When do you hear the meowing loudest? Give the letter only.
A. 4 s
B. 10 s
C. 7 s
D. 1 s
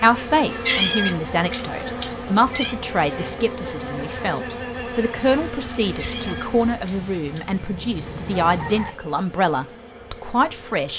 D.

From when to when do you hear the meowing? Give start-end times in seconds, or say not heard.
0.7-2.8, 6.0-7.5.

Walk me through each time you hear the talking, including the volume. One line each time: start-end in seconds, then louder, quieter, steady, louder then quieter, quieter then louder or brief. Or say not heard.
0.0-10.9 steady.